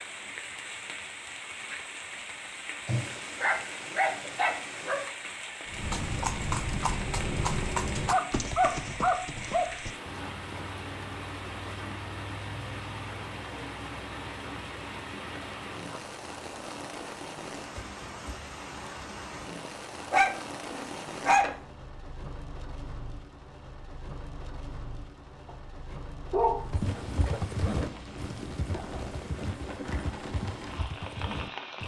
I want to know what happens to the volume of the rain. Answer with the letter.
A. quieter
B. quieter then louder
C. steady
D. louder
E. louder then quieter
C.